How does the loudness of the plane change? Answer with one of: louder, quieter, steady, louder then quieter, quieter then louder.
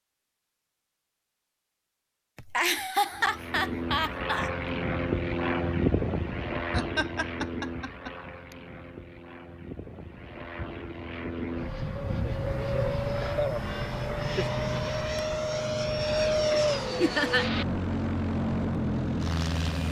quieter then louder.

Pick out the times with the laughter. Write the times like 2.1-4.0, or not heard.
2.4-4.5, 6.7-8.1, 17.0-17.4.